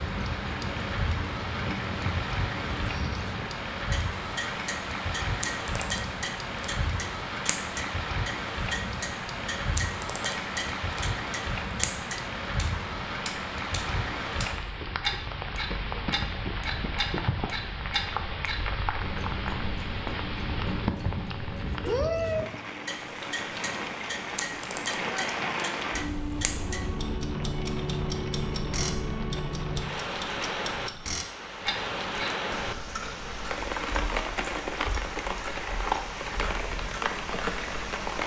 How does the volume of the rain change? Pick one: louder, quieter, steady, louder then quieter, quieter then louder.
steady.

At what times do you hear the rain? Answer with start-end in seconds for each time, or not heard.
0.0-38.2.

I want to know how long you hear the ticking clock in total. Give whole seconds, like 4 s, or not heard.
38 s.